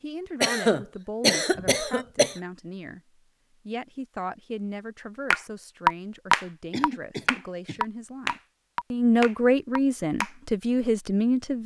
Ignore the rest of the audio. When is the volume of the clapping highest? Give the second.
6 s.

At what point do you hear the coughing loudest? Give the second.
1 s.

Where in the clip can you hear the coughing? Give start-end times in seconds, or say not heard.
0.4-2.4, 6.7-7.8.